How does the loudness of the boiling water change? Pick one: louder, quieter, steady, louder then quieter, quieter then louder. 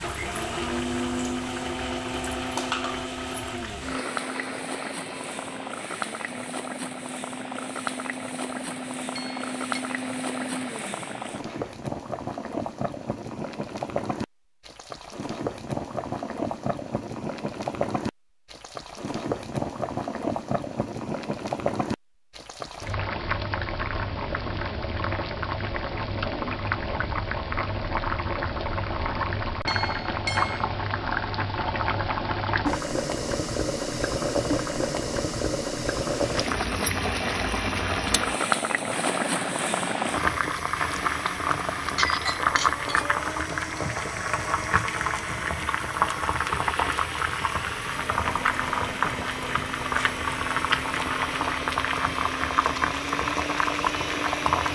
louder.